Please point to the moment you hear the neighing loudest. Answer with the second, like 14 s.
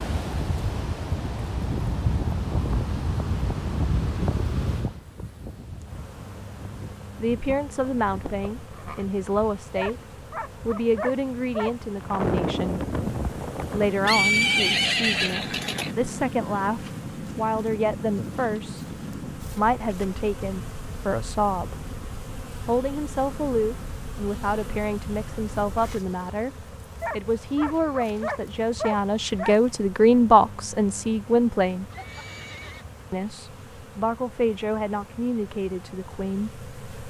14 s.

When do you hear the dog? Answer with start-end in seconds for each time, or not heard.
9.8-11.8, 27.0-29.6.